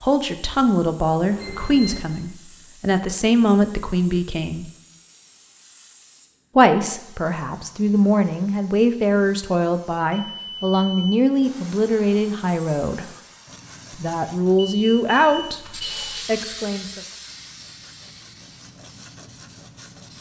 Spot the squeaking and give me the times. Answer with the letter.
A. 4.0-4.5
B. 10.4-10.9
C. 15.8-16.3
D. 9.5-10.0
C.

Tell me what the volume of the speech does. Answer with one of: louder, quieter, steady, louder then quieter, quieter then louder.
steady.